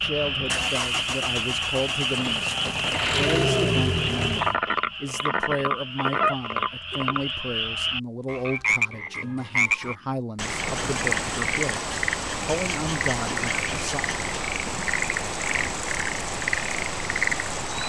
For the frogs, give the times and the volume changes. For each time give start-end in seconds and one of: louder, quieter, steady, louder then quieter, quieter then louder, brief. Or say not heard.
0.0-17.8 steady.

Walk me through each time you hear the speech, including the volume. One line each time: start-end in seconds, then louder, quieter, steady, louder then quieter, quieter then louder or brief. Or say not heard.
0.0-14.1 steady.